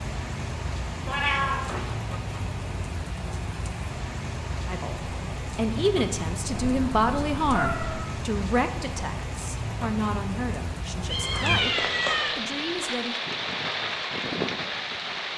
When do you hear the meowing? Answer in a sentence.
The meowing can be heard from 1.1 to 1.9 s, from 6.5 to 8.0 s and from 11.1 to 12.3 s.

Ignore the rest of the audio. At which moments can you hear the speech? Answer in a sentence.
You can hear the speech from 4.7 to 13.2 s.